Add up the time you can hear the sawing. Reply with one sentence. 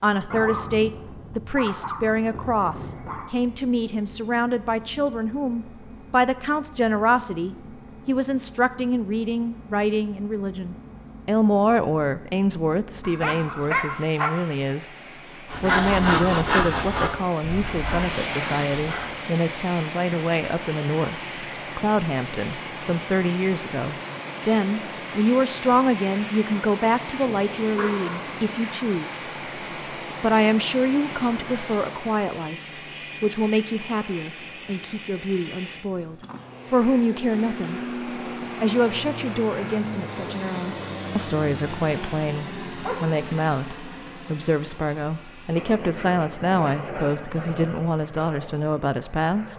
The sawing can be heard for 4 seconds in total.